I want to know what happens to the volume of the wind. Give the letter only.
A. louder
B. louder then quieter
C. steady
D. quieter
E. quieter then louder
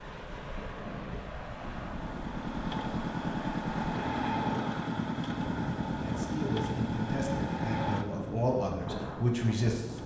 C.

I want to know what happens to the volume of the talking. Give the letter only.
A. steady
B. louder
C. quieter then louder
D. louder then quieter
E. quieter
B.